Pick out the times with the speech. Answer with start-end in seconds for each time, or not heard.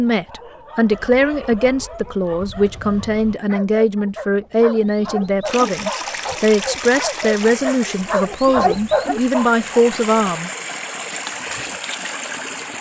0.0-10.5.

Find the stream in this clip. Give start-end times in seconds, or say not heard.
5.5-12.7.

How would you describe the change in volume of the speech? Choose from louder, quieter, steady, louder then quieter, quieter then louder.
steady.